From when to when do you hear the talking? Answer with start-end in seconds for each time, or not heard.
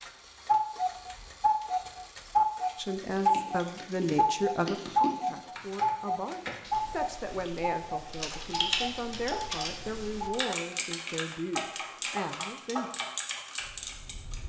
2.8-12.9.